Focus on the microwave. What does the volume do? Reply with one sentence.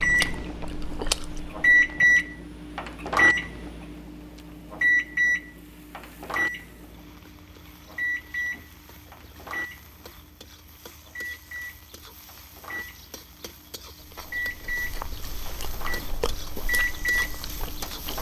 The volume of the microwave goes down, then up.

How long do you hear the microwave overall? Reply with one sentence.
The microwave can be heard for 18 seconds in total.